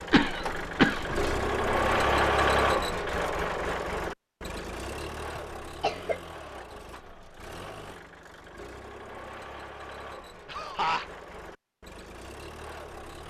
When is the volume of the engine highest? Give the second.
2 s.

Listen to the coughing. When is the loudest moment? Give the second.
1 s.